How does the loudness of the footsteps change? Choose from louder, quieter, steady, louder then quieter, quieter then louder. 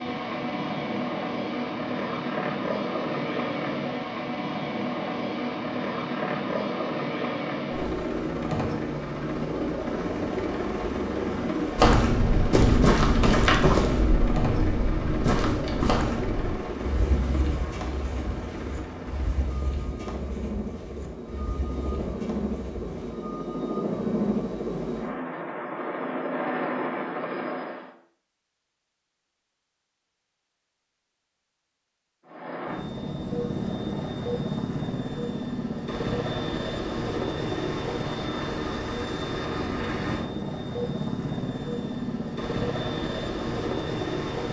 quieter.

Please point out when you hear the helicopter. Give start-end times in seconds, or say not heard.
0.0-27.9, 32.2-44.4.